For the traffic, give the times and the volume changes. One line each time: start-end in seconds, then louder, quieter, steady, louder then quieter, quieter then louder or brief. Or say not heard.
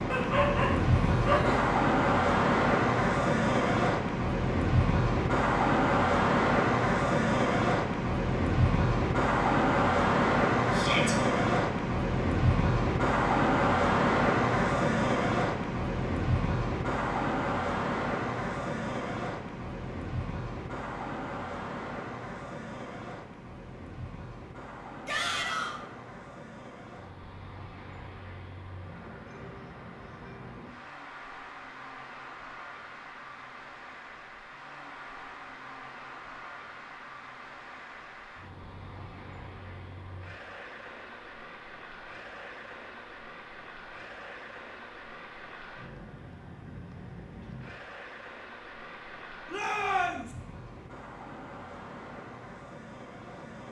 0.0-53.6 quieter.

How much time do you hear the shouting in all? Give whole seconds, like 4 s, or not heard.
2 s.